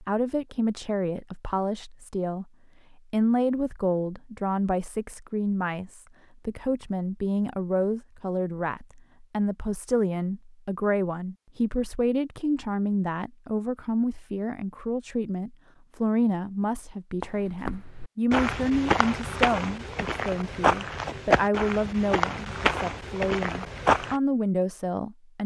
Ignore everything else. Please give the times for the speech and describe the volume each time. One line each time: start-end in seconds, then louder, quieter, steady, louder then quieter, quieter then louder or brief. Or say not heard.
0.0-25.4 steady.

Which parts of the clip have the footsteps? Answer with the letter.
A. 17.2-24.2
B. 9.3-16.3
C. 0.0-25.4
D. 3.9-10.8
A.